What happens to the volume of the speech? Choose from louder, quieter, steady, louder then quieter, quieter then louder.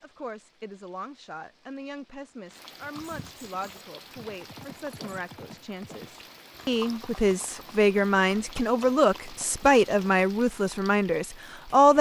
louder.